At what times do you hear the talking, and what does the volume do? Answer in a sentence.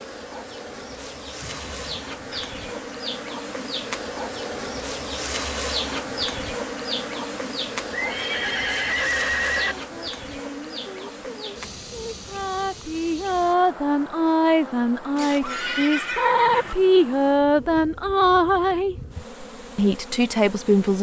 The talking can be heard from 9.7 to 18.9 s, getting louder; and briefly from 19.8 to 20.9 s.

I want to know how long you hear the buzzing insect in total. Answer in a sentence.
The buzzing insect can be heard for 21 seconds in total.